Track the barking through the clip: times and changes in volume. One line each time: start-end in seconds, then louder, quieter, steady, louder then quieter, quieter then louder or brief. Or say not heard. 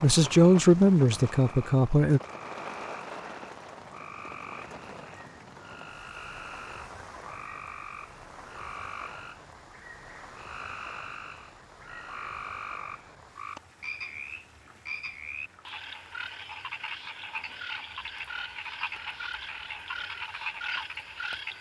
not heard.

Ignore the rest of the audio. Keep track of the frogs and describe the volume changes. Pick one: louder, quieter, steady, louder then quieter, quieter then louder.
louder.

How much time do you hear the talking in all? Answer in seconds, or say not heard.
2 s.